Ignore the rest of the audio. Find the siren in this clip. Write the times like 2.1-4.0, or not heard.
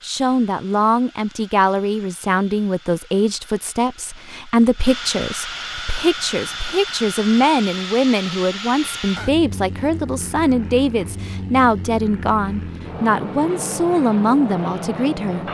not heard.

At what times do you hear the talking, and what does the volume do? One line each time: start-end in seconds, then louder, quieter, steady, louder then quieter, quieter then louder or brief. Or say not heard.
0.0-15.4 steady.